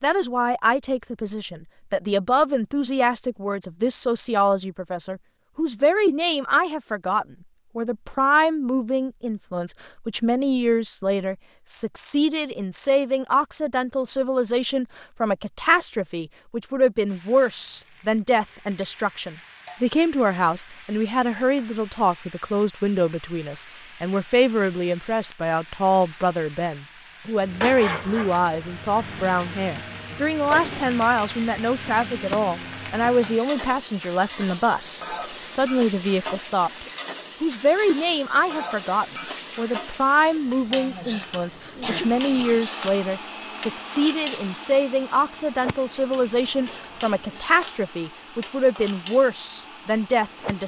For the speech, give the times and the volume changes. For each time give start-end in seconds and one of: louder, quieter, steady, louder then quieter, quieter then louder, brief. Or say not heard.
0.0-50.6 steady.